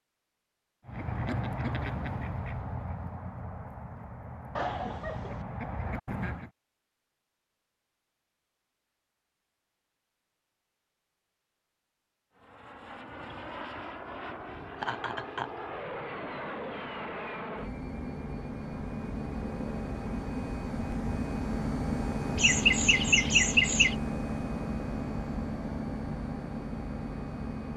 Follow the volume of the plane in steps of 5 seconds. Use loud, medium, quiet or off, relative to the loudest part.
off, off, medium, medium, loud, loud.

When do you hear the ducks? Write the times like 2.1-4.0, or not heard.
0.8-6.5.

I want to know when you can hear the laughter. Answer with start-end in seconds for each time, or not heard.
4.5-5.5, 14.7-15.5, 22.4-23.9.